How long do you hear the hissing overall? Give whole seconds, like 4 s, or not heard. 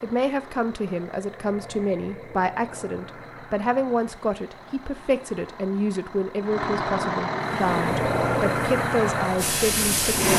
3 s.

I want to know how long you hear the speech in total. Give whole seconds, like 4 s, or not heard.
10 s.